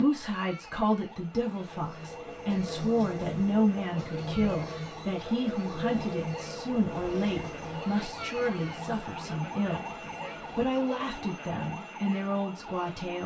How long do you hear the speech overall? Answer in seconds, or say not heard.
13 s.